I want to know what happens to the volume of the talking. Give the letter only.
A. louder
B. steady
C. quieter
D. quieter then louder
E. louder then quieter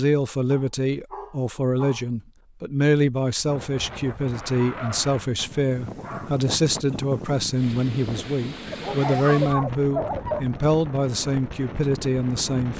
B.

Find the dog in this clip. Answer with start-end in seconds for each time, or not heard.
0.5-2.0, 4.5-5.1, 6.0-6.4, 8.7-10.6.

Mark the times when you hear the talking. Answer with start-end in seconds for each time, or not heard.
0.0-12.7.